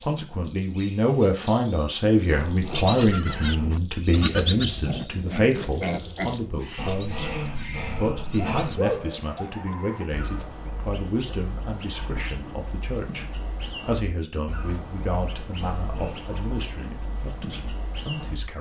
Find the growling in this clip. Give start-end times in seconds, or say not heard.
2.3-3.7, 6.8-8.8, 15.6-16.2.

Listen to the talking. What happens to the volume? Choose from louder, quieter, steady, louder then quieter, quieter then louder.
quieter.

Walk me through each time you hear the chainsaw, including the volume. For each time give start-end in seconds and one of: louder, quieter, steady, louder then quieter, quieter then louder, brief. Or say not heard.
not heard.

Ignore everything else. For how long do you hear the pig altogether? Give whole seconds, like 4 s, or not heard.
7 s.